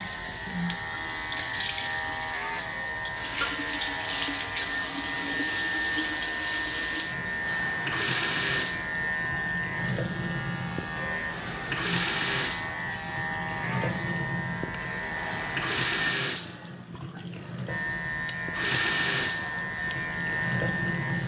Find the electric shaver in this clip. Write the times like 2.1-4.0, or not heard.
0.0-16.1, 17.6-21.2.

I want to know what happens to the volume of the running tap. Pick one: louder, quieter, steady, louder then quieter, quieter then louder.
steady.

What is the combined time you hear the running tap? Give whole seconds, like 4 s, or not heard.
21 s.